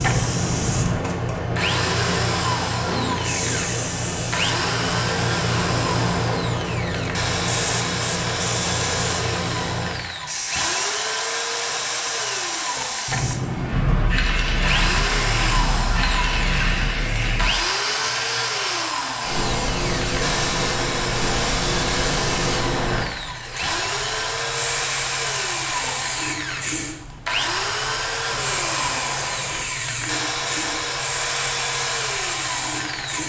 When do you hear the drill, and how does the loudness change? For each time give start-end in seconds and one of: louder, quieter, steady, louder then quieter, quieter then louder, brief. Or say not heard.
0.0-33.2 steady.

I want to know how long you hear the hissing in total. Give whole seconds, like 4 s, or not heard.
33 s.